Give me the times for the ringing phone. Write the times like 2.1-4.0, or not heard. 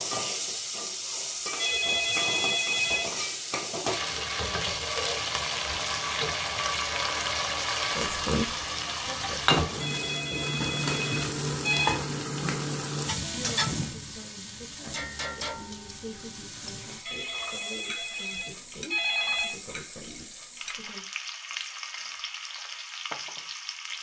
1.6-3.2, 9.8-12.0, 17.1-19.6.